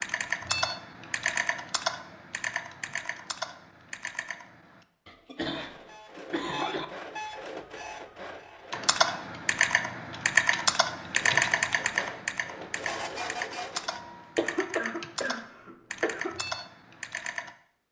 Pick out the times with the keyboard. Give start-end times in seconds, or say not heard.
0.0-4.8, 8.7-17.6.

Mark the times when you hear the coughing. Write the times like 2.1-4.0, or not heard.
5.0-6.8, 14.3-16.4.